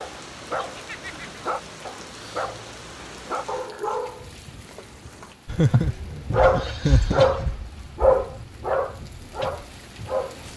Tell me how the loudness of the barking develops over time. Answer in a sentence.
The volume of the barking goes up, then down.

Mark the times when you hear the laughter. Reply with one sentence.
The laughter can be heard from 0.7 to 1.4 s and from 5.5 to 7.5 s.